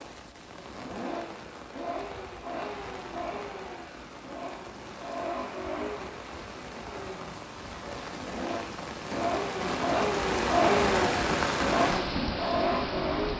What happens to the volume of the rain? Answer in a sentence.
The volume of the rain goes up.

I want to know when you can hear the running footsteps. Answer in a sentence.
You can't hear the running footsteps here.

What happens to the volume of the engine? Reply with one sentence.
The loudness of the engine goes up.